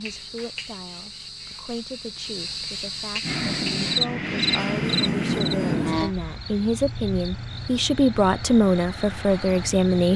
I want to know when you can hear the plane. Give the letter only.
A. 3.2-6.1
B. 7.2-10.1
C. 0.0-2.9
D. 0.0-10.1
A.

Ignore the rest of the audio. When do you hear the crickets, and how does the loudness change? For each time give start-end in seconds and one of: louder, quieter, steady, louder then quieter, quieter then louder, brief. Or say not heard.
0.0-10.1 louder then quieter.